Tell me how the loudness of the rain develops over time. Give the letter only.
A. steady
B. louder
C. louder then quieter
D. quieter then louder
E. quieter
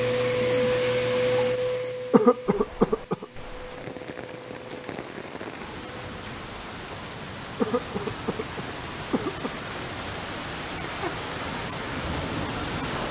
B.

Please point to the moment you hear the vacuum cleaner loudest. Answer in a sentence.
The loudest moment of the vacuum cleaner is at 1 second.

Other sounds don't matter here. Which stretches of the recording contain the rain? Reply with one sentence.
The rain can be heard from 2.5 to 13.0 s.